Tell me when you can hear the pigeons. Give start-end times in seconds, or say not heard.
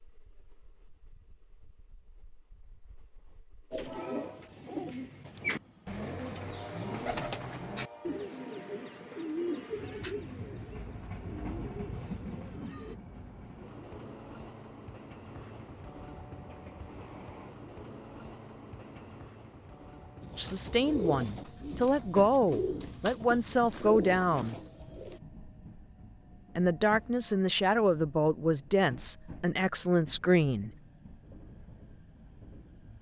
3.7-12.9, 20.2-25.2.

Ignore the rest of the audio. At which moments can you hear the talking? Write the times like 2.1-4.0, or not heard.
20.4-24.6, 26.6-30.7.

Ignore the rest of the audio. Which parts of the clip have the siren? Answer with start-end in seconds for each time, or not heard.
not heard.